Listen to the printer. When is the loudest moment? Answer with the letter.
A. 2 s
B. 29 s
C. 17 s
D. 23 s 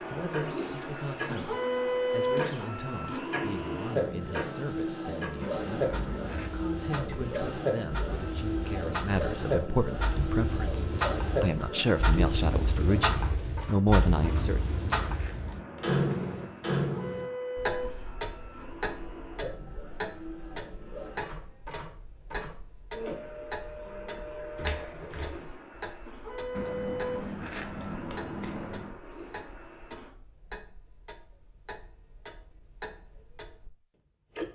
A.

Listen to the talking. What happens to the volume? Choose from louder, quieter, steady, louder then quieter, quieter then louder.
louder.